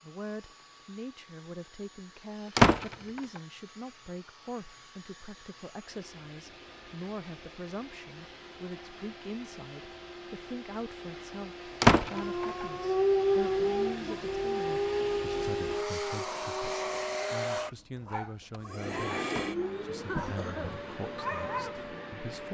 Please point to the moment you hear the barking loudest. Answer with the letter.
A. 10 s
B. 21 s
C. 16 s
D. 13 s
D.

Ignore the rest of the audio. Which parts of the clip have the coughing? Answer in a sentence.
You can hear the coughing from 20.1 to 20.8 s.